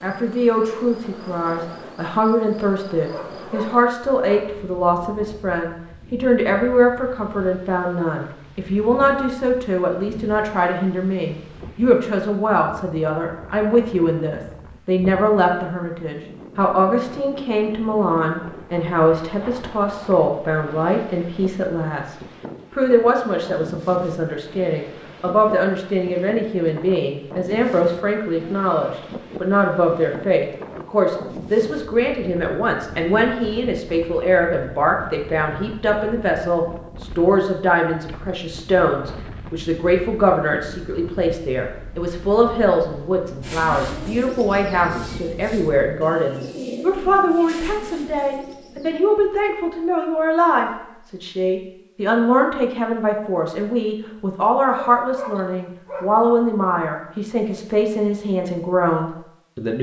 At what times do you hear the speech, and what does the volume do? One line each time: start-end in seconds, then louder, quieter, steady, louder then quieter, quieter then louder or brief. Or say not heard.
0.0-59.7 steady.